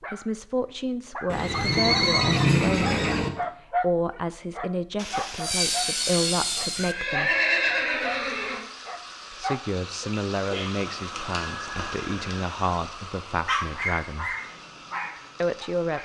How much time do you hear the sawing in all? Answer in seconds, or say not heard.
2 s.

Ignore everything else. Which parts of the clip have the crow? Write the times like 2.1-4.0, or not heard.
not heard.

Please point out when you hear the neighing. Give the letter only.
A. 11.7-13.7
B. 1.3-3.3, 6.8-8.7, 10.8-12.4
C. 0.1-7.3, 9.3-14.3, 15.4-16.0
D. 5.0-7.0
B.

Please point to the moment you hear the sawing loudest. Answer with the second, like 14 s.
6 s.